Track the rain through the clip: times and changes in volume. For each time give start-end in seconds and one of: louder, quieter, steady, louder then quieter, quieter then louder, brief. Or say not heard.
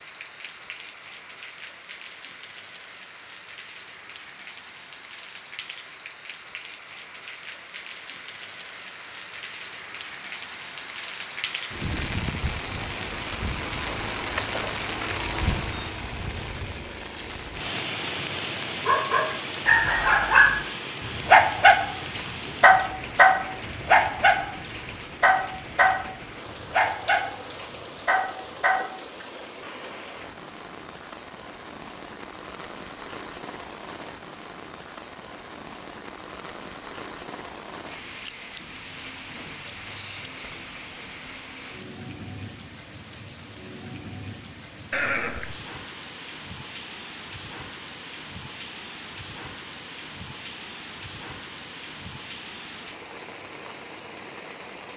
0.0-54.9 louder then quieter.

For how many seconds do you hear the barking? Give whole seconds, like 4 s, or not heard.
10 s.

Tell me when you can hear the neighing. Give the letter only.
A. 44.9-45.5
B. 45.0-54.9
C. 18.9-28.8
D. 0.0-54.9
A.